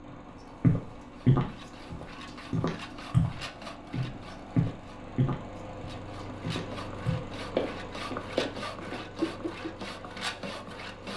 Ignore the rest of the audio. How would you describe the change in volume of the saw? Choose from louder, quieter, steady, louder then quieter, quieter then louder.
louder.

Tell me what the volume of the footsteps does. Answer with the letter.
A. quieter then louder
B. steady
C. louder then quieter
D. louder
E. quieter
A.